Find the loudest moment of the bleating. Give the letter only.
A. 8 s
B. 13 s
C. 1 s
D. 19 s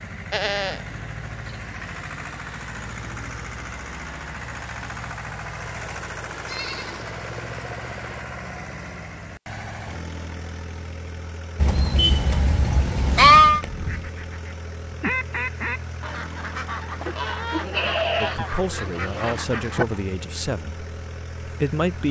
B.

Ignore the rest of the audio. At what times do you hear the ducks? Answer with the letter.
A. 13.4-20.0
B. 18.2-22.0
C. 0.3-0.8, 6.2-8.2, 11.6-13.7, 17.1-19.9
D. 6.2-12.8
A.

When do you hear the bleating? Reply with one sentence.
The bleating can be heard from 0.3 to 0.8 s, from 6.2 to 8.2 s, from 11.6 to 13.7 s and from 17.1 to 19.9 s.